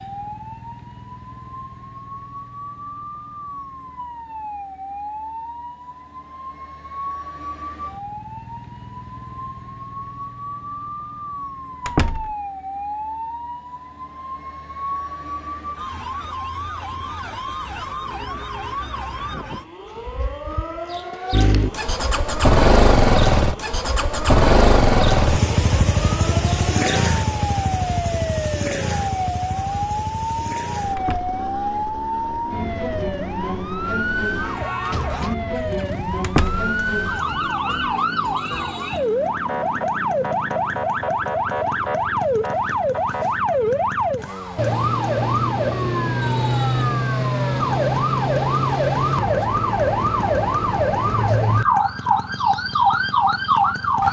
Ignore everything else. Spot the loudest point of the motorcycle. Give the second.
23 s.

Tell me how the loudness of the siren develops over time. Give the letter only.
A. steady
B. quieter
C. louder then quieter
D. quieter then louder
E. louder
E.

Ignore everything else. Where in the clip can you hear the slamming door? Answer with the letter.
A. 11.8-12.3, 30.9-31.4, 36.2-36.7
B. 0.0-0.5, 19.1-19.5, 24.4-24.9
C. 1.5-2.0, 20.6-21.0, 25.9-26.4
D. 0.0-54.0
A.